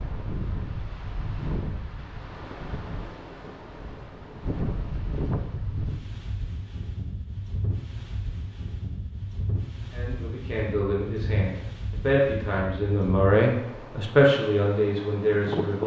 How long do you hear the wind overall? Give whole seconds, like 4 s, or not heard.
16 s.